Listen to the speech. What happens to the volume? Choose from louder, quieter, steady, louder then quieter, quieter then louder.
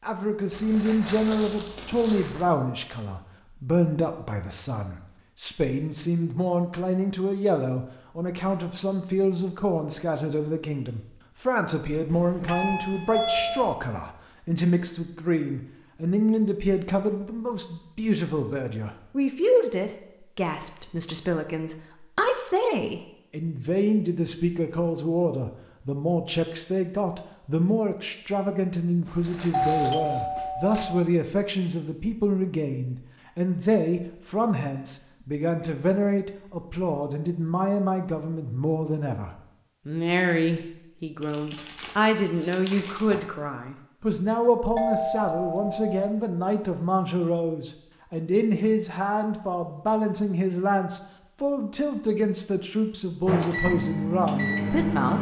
steady.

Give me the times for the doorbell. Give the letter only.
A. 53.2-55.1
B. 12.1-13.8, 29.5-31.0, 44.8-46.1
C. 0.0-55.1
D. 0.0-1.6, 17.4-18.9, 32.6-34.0
B.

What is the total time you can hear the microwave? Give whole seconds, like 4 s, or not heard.
2 s.